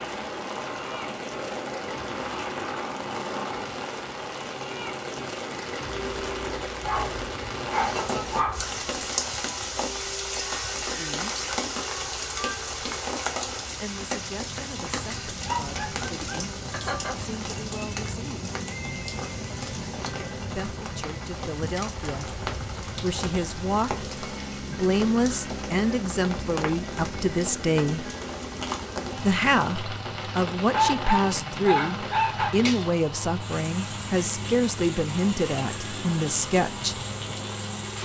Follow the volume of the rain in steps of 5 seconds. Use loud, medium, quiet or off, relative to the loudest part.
medium, loud, loud, medium, medium, medium, medium, medium.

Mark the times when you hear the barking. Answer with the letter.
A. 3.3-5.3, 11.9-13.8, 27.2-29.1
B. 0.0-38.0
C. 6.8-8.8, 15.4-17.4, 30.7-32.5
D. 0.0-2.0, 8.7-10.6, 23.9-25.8
C.